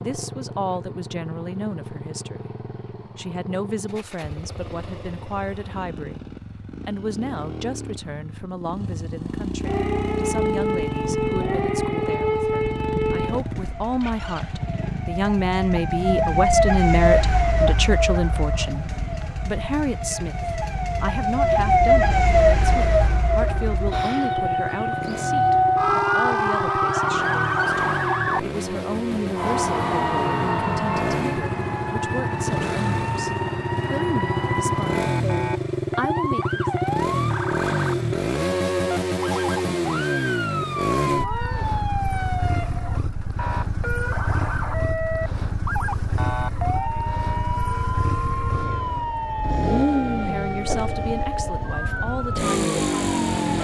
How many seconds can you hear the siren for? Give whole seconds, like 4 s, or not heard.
44 s.